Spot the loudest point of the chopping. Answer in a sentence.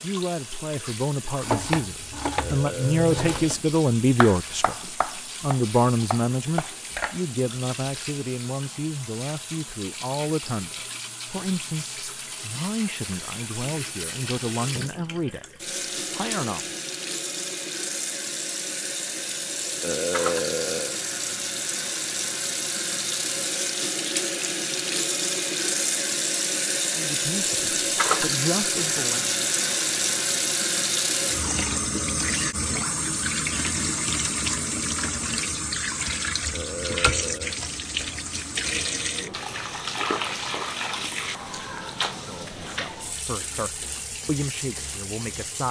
The loudest moment of the chopping is at 2 seconds.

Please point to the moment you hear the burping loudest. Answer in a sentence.
The loudest moment of the burping is at 20 seconds.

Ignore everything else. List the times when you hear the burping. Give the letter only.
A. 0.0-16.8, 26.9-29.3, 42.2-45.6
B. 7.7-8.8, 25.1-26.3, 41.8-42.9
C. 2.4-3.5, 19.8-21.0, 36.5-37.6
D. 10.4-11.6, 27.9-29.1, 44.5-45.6
C.